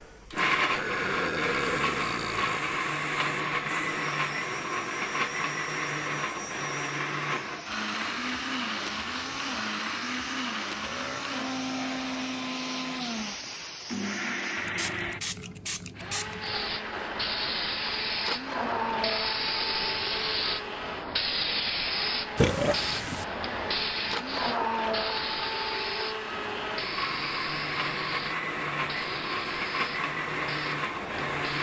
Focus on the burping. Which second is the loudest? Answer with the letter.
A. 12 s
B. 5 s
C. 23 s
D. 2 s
C.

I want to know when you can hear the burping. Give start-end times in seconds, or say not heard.
0.7-2.6, 10.8-12.3, 22.4-23.2.